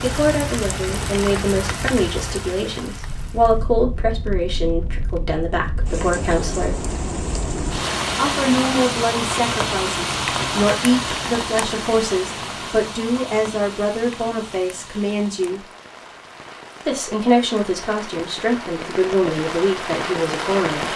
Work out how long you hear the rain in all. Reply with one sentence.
You can hear the rain for 21 seconds altogether.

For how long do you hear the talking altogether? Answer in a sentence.
The talking can be heard for 18 seconds in total.